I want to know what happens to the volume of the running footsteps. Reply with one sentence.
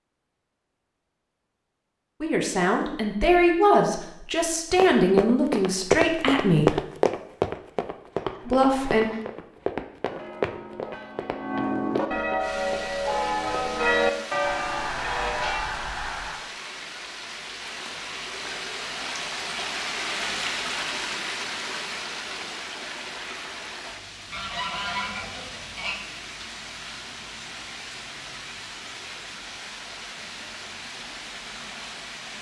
The volume of the running footsteps goes down.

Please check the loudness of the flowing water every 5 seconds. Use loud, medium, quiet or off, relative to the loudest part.
off, off, medium, loud, loud, medium, medium.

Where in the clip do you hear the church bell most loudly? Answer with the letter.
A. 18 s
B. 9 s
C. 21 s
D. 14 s
D.